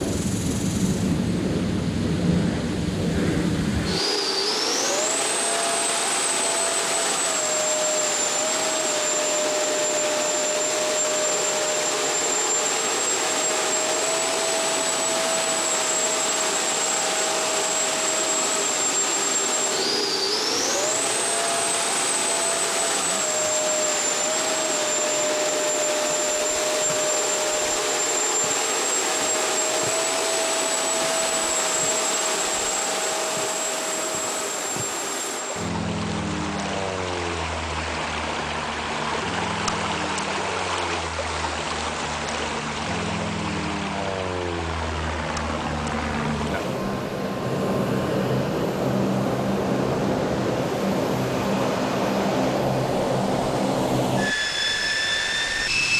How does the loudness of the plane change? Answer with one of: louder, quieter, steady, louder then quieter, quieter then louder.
quieter then louder.